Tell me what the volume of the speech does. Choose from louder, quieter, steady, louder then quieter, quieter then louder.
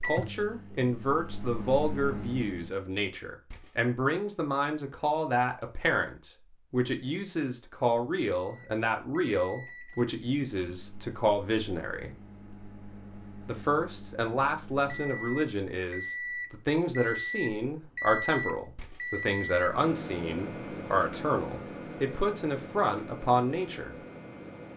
steady.